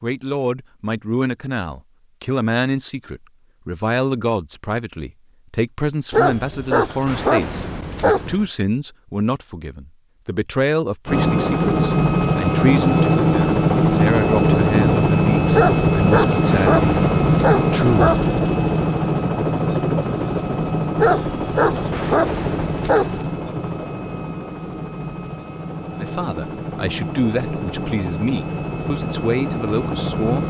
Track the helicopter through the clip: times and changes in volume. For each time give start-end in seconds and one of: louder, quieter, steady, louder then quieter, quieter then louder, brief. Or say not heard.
11.1-30.4 quieter.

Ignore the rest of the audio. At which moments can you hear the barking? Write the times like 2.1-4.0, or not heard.
6.1-8.4, 15.5-18.1, 20.9-23.4.